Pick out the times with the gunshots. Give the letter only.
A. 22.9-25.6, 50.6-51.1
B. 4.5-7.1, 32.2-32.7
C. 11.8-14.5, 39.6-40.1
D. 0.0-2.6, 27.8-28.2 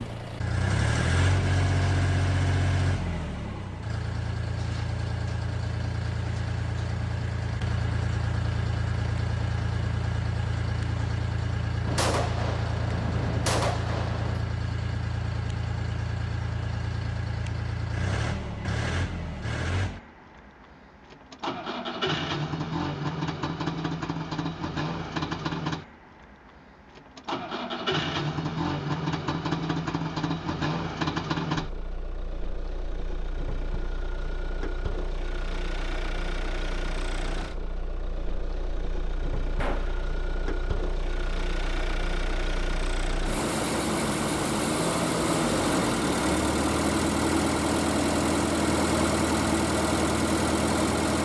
C.